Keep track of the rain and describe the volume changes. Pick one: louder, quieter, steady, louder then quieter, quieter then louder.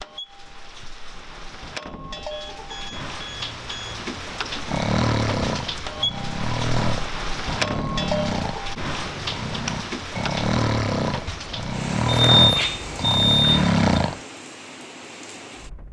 louder then quieter.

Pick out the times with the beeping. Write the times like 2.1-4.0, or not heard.
2.3-4.0, 12.1-13.8.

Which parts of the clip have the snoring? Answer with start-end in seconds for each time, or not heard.
4.7-14.2.